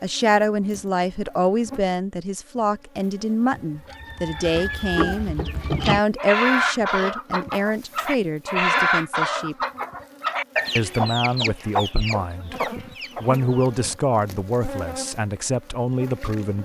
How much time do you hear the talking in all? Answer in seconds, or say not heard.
15 s.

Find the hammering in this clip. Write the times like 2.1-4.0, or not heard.
not heard.